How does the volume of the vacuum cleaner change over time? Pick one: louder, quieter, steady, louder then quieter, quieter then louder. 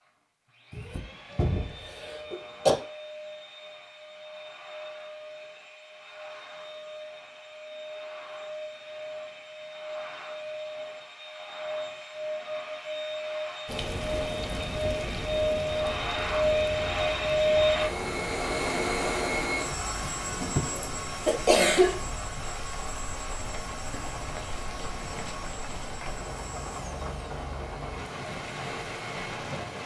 louder then quieter.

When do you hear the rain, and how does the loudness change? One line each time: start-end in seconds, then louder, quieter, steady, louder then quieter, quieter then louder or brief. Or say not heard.
13.7-29.8 steady.